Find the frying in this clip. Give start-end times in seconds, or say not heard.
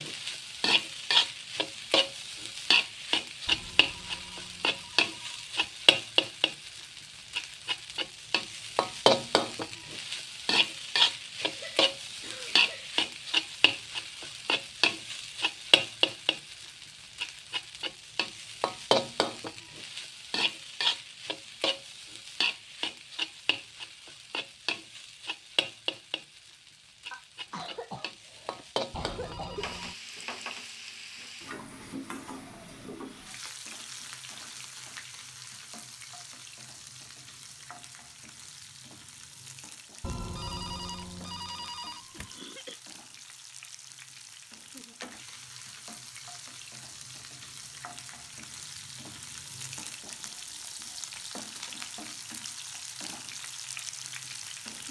0.0-54.8.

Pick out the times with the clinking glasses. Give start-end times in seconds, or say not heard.
not heard.